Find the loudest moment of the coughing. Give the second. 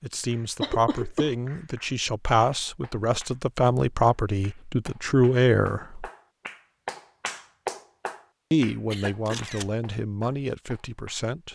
1 s.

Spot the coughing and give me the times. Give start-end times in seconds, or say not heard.
0.6-1.4, 8.9-9.4.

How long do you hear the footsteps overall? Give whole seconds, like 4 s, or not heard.
not heard.